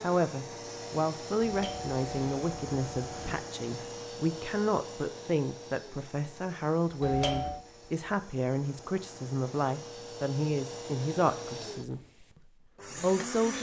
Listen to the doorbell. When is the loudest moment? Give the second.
7 s.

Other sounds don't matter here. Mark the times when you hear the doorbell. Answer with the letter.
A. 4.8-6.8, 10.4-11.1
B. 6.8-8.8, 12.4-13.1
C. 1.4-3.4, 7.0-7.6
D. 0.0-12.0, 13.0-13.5
C.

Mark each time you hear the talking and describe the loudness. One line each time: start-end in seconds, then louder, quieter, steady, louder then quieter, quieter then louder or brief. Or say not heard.
0.0-12.0 steady
13.0-13.5 brief.